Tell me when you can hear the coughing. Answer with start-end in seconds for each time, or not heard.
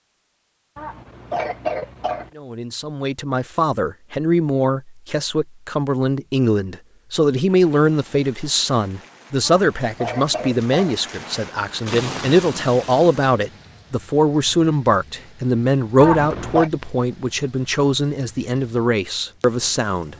0.8-2.3, 9.4-11.0, 16.0-16.7.